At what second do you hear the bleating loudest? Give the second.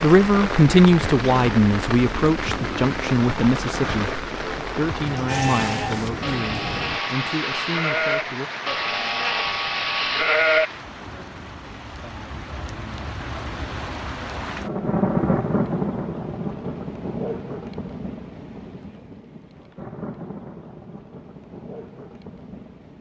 10 s.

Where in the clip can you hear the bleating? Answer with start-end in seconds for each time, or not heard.
5.2-10.7.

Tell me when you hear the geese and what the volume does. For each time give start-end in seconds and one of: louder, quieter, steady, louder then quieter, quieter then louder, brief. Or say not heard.
not heard.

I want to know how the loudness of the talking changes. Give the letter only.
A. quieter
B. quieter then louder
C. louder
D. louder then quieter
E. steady
A.